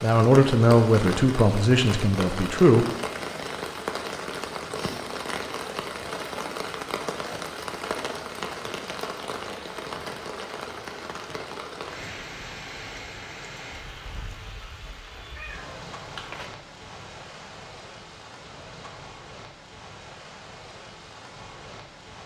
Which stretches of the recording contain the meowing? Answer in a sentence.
The meowing can be heard from 15.3 to 16.5 s.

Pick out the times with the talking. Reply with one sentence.
You can hear the talking from 0.0 to 2.9 s.